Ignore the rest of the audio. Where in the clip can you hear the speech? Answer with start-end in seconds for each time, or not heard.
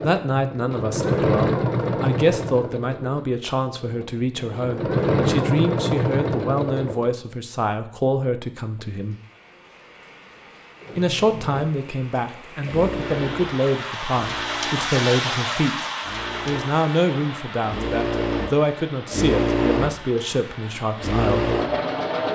0.0-9.2, 10.9-15.8, 16.4-21.6.